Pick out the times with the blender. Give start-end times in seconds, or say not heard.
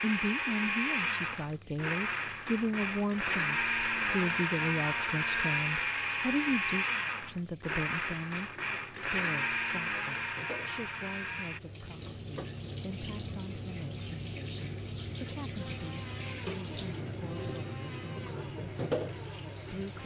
0.0-11.6, 15.6-20.0.